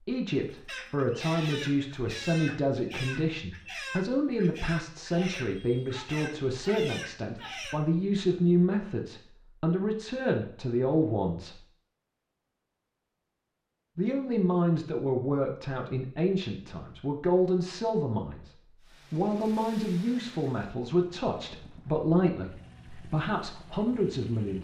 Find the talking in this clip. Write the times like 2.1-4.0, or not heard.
0.1-11.6, 13.9-18.5, 19.1-24.5.